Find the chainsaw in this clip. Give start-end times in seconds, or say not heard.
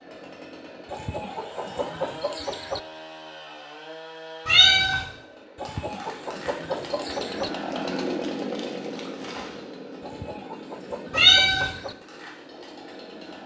0.0-13.4.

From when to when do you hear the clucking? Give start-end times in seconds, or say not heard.
0.8-2.8, 5.5-7.5, 10.0-11.9.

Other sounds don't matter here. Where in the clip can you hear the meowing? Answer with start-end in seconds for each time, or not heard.
4.5-5.0, 11.1-11.7.